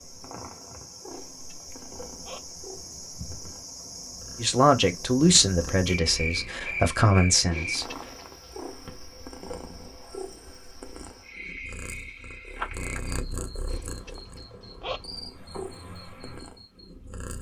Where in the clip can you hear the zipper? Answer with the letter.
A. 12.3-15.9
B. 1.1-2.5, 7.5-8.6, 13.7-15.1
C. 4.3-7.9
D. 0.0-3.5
B.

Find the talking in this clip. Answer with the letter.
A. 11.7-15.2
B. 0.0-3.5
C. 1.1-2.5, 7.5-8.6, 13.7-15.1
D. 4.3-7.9
D.